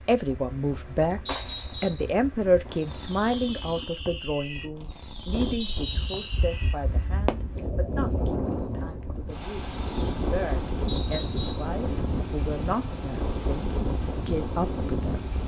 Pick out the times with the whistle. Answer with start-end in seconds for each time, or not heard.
1.2-2.1, 5.6-6.5, 10.8-11.7.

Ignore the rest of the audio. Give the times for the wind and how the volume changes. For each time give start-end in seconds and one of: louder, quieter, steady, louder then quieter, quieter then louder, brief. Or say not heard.
0.0-15.4 louder.